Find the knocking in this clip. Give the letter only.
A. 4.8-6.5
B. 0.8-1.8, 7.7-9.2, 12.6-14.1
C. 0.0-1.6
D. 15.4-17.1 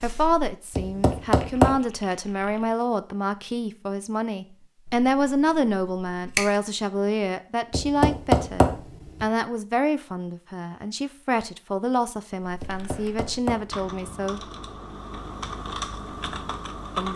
B.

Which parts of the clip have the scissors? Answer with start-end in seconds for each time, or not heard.
4.8-6.5.